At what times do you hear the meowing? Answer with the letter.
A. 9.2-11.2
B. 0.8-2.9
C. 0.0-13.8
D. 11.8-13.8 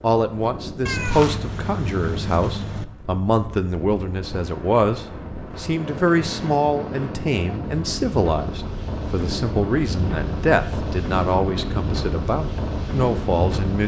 B.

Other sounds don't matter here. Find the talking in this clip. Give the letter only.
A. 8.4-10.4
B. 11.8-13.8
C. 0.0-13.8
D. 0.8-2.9
C.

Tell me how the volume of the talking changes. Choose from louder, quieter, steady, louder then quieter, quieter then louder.
steady.